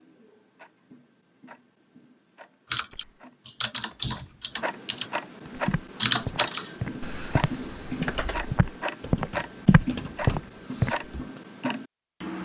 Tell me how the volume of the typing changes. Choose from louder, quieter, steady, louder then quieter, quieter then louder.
quieter.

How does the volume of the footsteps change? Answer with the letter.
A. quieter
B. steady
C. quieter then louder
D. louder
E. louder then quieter
D.